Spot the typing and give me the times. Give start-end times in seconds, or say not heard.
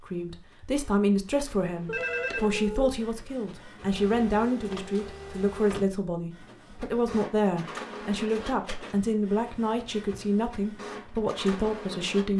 not heard.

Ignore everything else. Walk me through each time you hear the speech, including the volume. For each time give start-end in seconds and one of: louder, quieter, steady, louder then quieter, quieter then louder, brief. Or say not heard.
0.0-12.3 steady.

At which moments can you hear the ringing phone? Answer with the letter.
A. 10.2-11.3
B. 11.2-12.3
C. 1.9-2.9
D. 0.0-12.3
C.